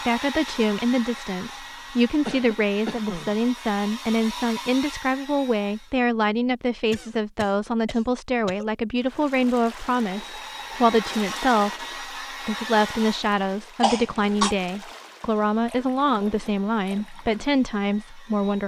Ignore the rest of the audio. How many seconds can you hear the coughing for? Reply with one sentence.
You can hear the coughing for 4 seconds altogether.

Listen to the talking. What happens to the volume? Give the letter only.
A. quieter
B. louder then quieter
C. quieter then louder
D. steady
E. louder
D.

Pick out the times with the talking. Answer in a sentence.
You can hear the talking from 0.1 to 18.6 s.